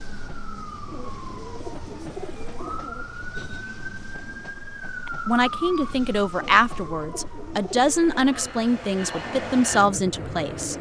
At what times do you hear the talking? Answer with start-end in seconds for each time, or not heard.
5.0-10.7.